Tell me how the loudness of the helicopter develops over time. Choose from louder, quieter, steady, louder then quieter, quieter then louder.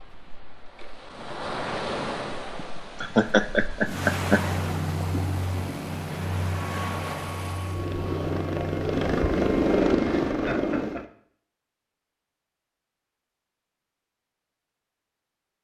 louder.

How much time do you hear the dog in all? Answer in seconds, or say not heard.
not heard.